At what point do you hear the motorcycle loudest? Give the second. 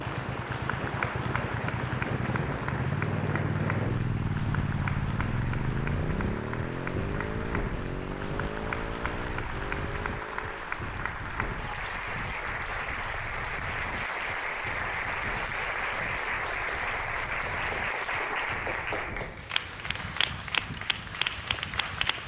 4 s.